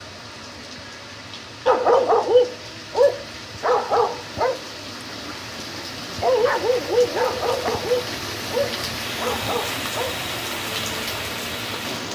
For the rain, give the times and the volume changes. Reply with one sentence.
The rain can be heard from 0.0 to 12.0 s, getting louder.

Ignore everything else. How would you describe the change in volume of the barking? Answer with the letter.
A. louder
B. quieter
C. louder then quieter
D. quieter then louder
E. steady
B.